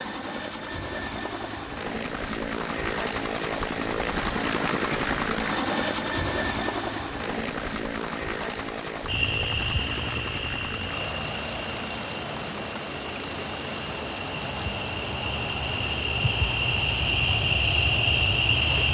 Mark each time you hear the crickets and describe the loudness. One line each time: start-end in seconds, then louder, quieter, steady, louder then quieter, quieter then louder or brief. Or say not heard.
9.1-18.8 quieter then louder.